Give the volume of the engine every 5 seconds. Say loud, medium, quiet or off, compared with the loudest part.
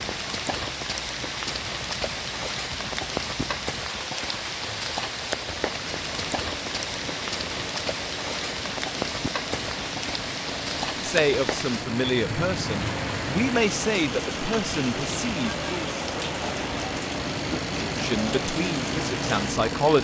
medium, medium, loud, loud.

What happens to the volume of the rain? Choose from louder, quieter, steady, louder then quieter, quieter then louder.
steady.